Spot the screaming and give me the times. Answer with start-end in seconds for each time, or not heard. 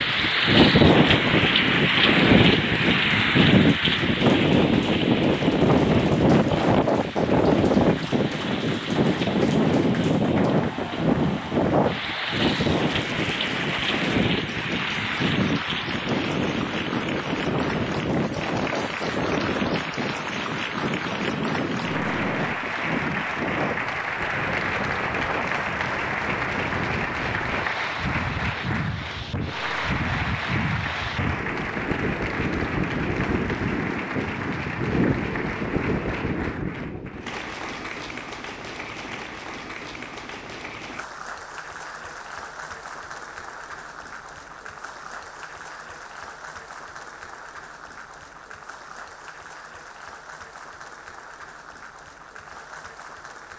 not heard.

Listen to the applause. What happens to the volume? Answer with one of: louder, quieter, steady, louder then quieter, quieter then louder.
louder then quieter.